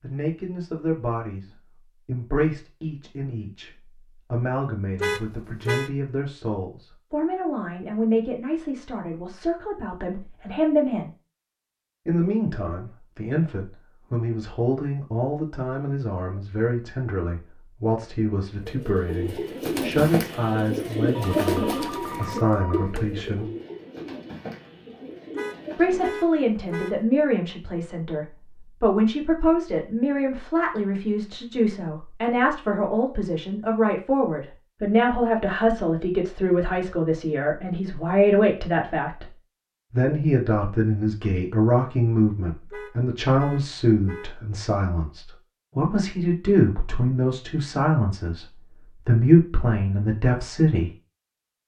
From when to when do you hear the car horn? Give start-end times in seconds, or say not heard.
5.0-5.9, 25.4-26.9, 42.7-44.3.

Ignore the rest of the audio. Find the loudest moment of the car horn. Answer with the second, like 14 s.
5 s.